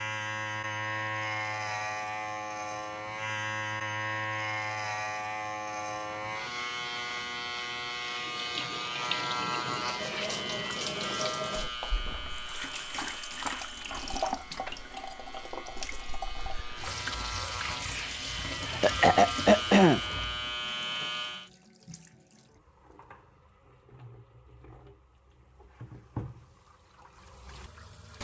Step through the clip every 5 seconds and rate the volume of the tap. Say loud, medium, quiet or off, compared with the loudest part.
off, loud, loud, loud, quiet, medium.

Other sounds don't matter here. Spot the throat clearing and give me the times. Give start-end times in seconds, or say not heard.
18.6-20.0.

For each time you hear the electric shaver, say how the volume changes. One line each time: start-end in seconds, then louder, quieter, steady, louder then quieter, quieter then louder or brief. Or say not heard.
0.0-21.5 quieter then louder.